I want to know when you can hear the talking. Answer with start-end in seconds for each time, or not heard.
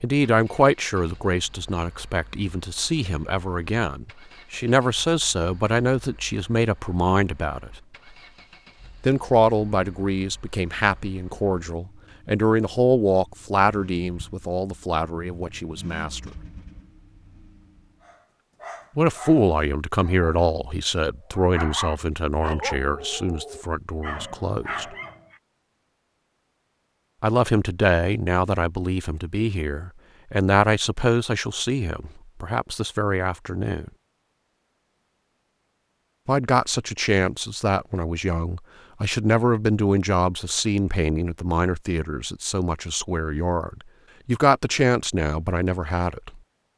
0.0-7.7, 9.0-16.3, 18.9-24.9, 27.2-33.9, 36.2-46.4.